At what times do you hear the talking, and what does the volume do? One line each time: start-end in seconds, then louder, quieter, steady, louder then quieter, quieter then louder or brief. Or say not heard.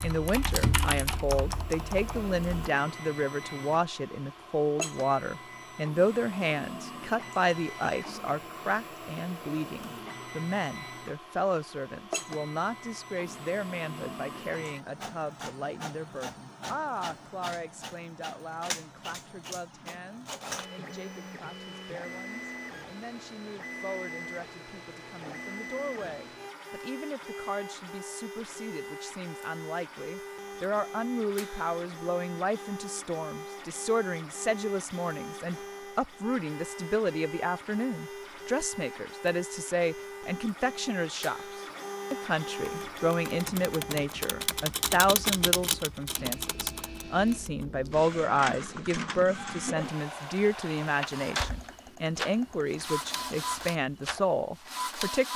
0.0-41.4 quieter then louder
42.1-55.3 steady.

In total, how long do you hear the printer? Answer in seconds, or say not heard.
55 s.